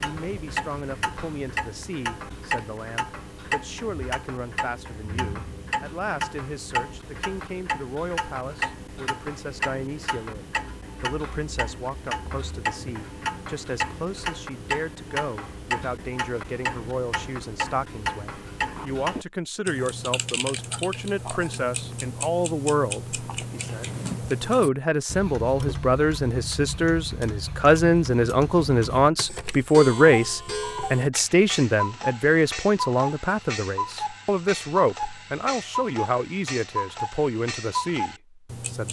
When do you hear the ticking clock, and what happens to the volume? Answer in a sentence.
You can hear the ticking clock from 0.0 to 38.8 s, at a steady volume.